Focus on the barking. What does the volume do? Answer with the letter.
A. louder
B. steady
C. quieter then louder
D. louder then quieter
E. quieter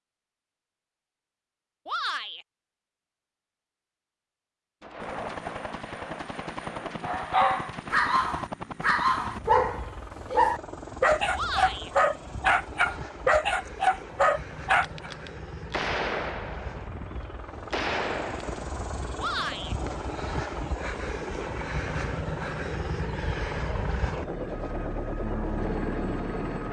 B.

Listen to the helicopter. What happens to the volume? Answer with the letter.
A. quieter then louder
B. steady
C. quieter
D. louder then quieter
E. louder
E.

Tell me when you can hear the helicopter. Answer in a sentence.
The helicopter can be heard from 5.0 to 26.6 s.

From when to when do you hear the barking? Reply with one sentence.
You can hear the barking from 7.0 to 15.1 s.